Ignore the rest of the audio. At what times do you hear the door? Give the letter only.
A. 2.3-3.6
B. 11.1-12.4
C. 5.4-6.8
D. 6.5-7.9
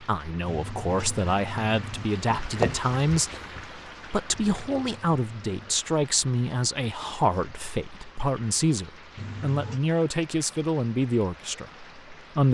A.